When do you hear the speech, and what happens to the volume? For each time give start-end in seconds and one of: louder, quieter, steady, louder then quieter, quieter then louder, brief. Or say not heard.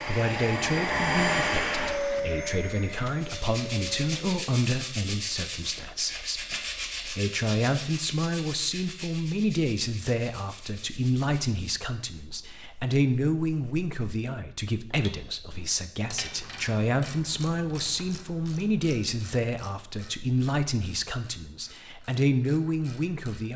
0.1-23.5 steady.